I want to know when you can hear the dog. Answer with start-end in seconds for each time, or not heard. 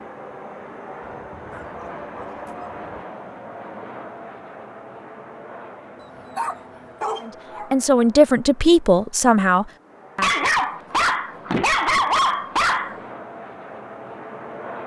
1.0-3.0, 6.0-7.7, 10.2-13.0.